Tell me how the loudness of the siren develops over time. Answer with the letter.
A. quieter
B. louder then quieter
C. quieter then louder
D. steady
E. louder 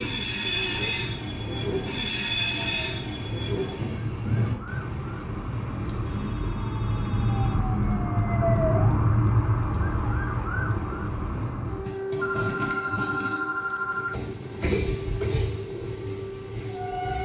B.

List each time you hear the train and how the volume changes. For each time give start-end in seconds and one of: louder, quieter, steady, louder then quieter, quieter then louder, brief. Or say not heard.
0.0-17.2 quieter then louder.